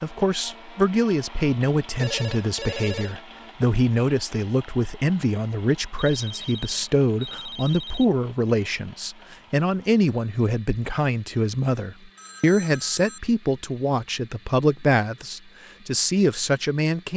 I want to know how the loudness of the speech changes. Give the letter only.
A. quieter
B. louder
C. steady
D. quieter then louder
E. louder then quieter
C.